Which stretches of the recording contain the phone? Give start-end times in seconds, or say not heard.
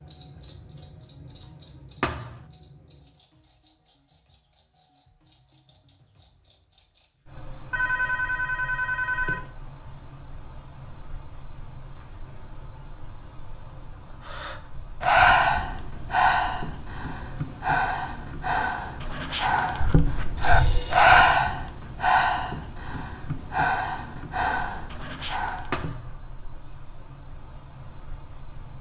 7.7-9.5, 19.8-21.4.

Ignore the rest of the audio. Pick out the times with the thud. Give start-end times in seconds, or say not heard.
2.0-2.5, 25.7-26.1.